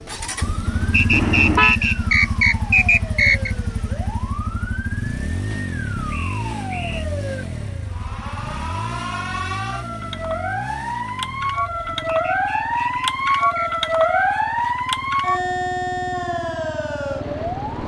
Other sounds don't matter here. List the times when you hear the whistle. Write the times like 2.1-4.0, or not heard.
0.9-3.5, 6.0-7.0, 12.1-13.7.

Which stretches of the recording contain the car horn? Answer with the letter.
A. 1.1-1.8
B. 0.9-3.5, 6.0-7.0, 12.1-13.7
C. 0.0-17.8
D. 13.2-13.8
A.